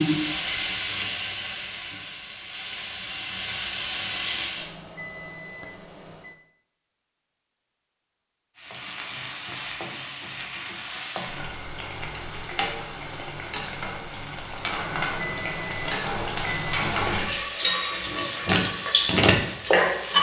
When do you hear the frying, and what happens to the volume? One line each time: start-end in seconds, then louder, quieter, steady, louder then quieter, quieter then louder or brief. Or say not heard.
0.0-4.7 quieter then louder
8.6-20.1 louder.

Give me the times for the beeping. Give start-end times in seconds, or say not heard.
4.5-6.4, 14.8-16.8.